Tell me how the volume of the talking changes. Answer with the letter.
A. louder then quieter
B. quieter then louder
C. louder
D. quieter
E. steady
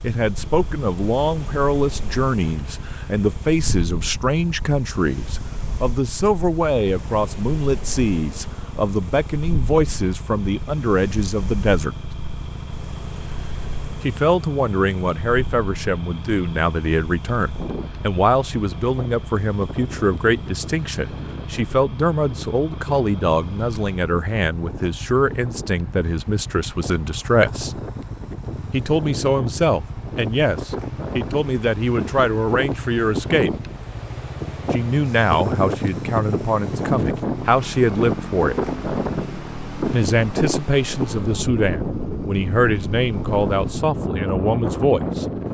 E.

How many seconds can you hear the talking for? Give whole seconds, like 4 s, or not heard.
40 s.